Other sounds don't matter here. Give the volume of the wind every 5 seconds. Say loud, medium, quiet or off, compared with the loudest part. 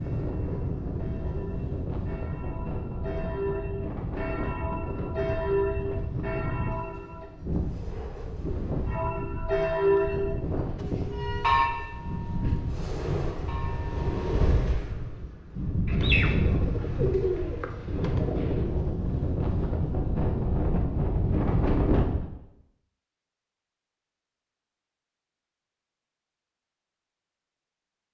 medium, medium, medium, loud, loud, off.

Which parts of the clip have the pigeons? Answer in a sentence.
You can hear the pigeons from 15.8 to 18.8 s.